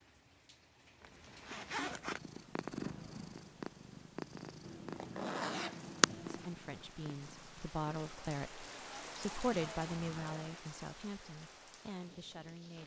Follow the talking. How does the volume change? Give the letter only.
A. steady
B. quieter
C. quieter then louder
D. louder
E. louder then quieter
E.